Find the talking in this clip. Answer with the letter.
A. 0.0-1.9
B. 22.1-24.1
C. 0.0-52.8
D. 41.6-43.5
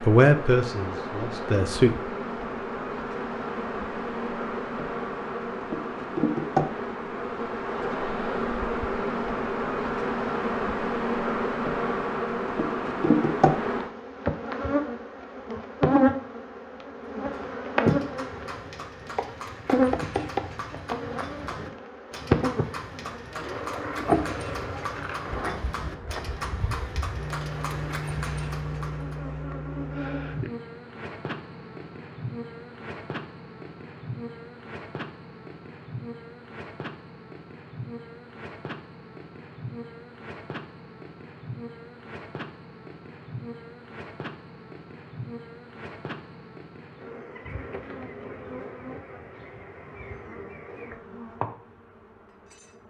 A.